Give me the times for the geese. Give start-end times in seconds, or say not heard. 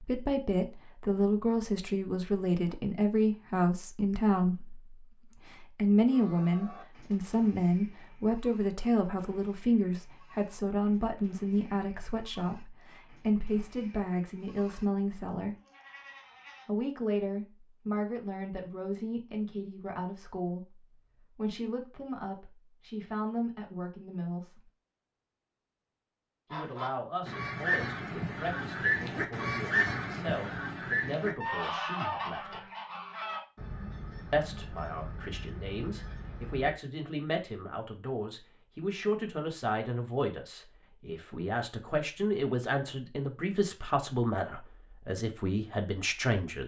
26.5-36.8.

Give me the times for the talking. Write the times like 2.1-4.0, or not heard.
0.0-15.6, 16.6-24.7, 26.5-32.6, 34.3-46.6.